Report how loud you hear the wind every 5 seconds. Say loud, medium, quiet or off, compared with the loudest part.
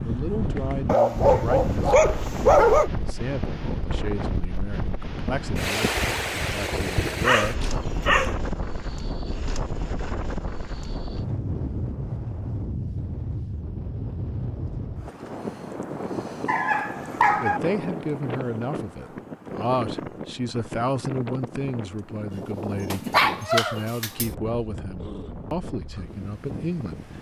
loud, loud, loud, loud, medium, medium.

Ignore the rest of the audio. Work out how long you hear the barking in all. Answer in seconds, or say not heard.
6 s.